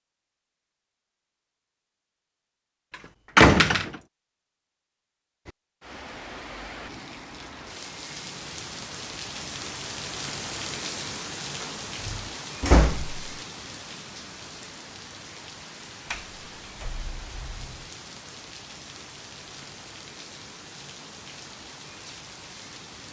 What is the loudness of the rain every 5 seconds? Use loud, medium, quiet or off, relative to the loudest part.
off, loud, loud, medium, medium.